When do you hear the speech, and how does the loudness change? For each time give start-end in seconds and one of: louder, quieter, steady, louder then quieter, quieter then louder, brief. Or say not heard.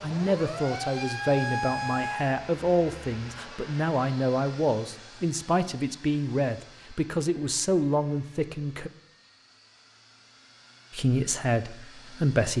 0.0-8.9 steady
10.9-12.5 brief.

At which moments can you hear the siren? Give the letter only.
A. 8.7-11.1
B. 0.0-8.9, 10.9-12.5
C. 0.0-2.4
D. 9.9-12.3
C.